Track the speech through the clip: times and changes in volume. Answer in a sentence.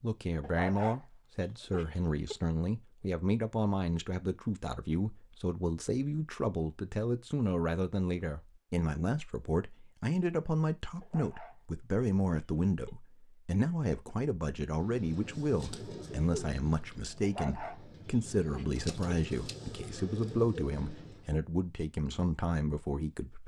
The speech can be heard from 0.0 to 23.4 s, at a steady volume.